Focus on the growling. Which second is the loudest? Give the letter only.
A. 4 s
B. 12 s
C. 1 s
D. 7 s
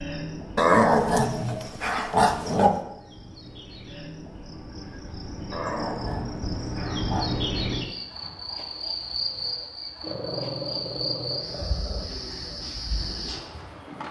C.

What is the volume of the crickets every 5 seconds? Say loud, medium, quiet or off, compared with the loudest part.
medium, loud, loud.